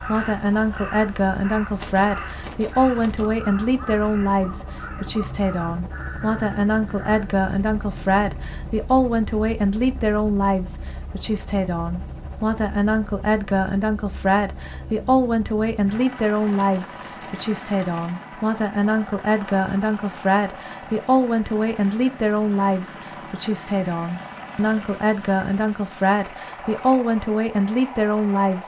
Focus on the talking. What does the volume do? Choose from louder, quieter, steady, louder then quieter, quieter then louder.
steady.